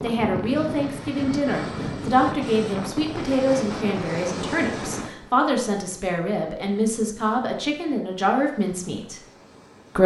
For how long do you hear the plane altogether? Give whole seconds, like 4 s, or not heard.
10 s.